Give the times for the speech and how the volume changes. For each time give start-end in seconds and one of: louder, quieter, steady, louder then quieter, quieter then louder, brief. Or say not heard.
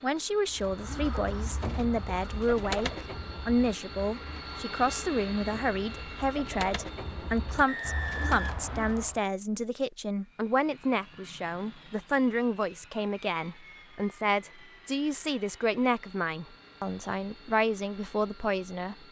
0.0-19.0 steady.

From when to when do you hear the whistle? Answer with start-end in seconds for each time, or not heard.
7.7-9.2.